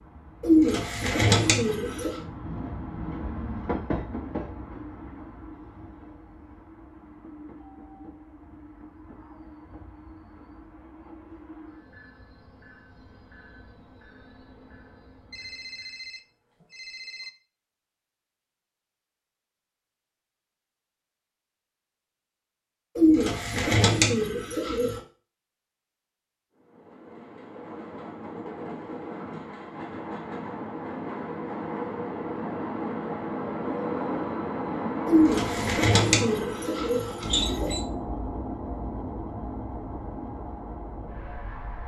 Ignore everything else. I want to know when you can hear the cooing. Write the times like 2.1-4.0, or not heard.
0.4-2.2, 22.9-25.0, 35.0-37.8.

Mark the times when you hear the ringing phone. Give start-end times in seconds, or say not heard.
15.3-17.3.